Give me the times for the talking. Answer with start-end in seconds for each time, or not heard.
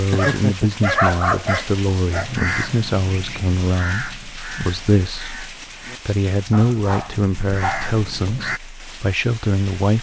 0.0-9.9.